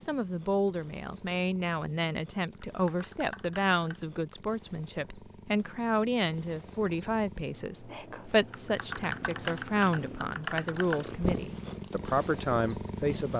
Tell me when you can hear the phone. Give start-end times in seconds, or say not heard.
not heard.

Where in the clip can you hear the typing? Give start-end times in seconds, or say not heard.
2.4-4.0, 8.2-11.1.